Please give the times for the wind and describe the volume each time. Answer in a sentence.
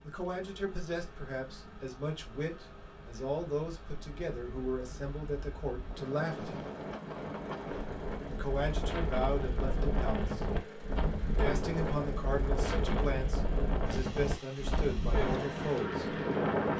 You can hear the wind from 0.0 to 16.7 s, getting louder.